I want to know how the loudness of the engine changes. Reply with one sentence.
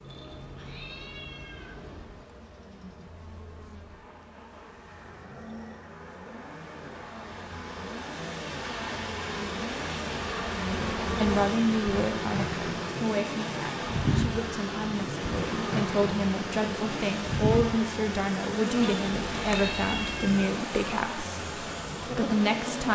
The volume of the engine goes up.